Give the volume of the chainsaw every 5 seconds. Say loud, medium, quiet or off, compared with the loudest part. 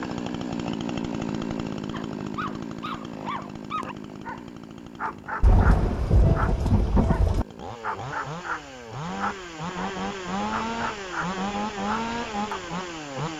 loud, medium, loud.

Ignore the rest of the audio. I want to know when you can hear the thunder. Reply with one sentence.
You can hear the thunder from 5.4 to 7.5 s.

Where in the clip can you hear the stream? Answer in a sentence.
The stream can't be heard in this clip.